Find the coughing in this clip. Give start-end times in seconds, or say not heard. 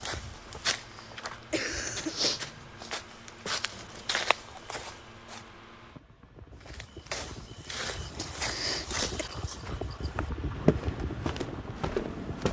0.9-2.4, 8.2-9.1.